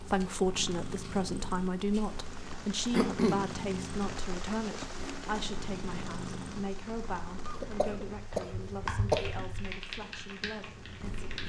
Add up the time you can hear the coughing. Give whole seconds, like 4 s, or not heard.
3 s.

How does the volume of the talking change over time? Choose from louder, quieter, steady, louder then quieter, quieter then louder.
quieter.